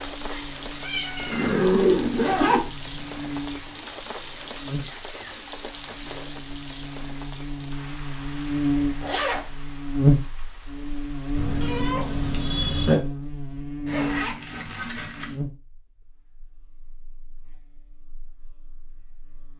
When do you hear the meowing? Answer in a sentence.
You can hear the meowing from 0.2 to 1.6 s and from 11.3 to 12.9 s.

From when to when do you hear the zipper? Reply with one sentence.
The zipper can be heard from 1.1 to 3.1 s, from 9.0 to 9.5 s and from 13.8 to 15.3 s.